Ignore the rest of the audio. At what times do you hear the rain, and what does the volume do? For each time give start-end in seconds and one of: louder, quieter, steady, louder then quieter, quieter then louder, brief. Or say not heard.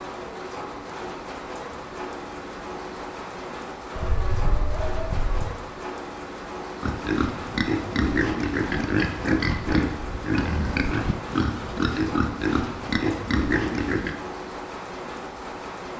0.0-15.9 steady.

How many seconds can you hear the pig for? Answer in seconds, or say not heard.
7 s.